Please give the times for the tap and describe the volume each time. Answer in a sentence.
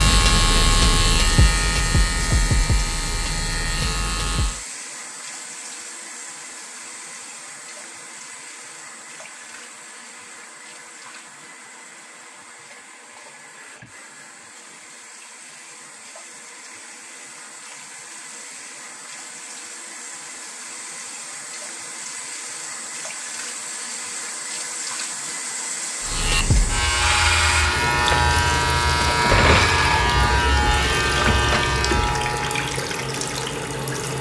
You can hear the tap from 0.0 to 34.1 s, getting quieter then louder.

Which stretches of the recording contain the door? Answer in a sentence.
You can hear the door from 29.0 to 29.8 s.